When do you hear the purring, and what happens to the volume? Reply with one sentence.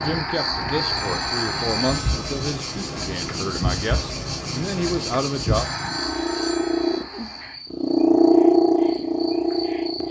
The purring can be heard from 0.0 to 10.0 s, getting louder.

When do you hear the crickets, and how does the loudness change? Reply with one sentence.
You can hear the crickets from 0.0 to 10.0 s, getting quieter.